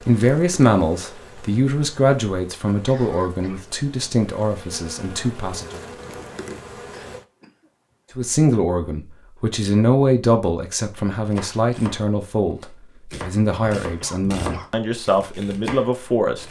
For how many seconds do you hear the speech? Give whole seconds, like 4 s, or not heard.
14 s.